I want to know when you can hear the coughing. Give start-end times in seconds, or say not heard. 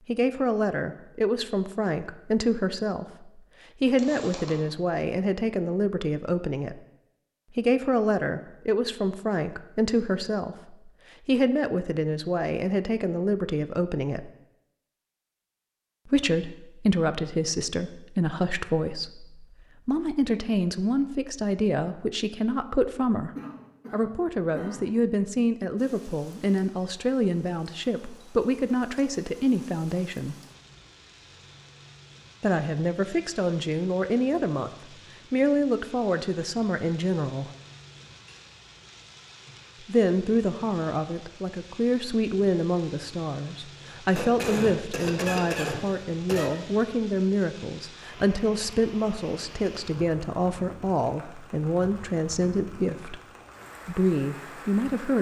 4.0-4.7, 23.4-24.9, 44.1-46.5.